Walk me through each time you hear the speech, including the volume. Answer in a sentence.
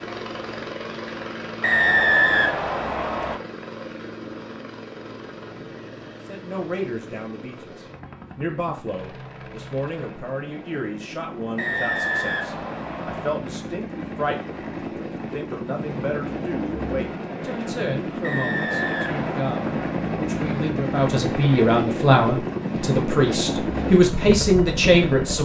The speech can be heard from 6.2 to 25.4 s, getting louder.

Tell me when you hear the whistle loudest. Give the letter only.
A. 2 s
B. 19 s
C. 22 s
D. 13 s
A.